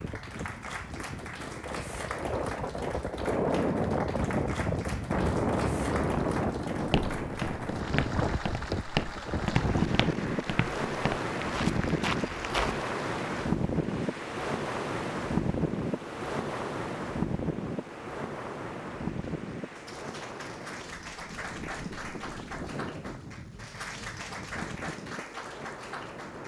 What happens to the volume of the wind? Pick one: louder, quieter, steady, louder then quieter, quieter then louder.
quieter.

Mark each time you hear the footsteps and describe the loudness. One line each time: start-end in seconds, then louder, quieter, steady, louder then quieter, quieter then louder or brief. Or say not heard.
6.8-12.8 steady.